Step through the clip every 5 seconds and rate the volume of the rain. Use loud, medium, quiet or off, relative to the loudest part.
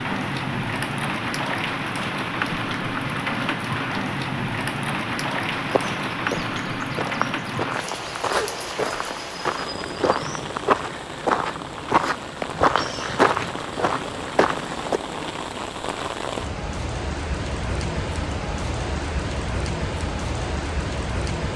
loud, loud, medium, loud, loud.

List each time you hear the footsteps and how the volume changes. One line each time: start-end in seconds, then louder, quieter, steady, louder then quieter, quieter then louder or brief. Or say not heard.
5.5-15.0 louder.